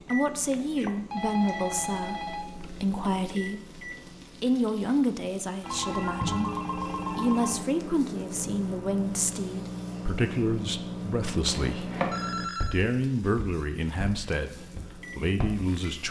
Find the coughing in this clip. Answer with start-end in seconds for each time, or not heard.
not heard.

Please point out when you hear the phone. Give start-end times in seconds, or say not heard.
0.8-2.7, 5.6-7.7, 12.1-12.8.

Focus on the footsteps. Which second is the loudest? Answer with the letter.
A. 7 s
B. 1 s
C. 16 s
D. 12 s
D.